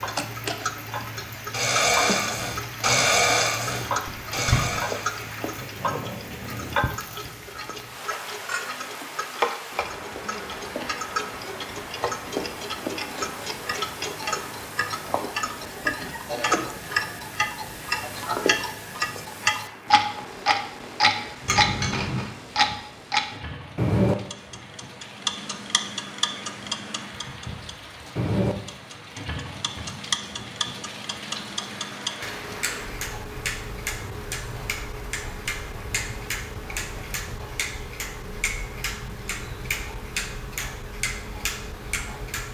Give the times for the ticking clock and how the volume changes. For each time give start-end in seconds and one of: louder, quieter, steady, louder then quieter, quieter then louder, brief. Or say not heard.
0.0-42.5 louder then quieter.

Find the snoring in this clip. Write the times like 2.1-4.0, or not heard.
1.5-7.2.